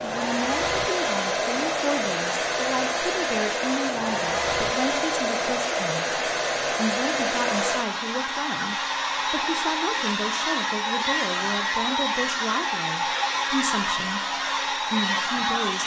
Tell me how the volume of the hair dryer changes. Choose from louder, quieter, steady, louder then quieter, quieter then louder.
steady.